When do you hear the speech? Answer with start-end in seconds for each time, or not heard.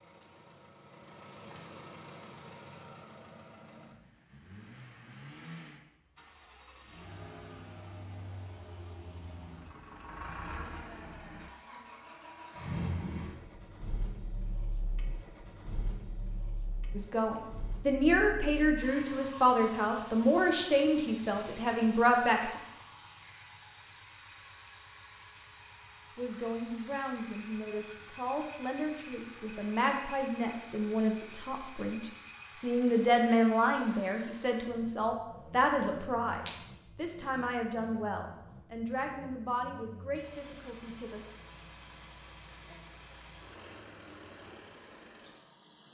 16.9-22.6, 26.1-41.3.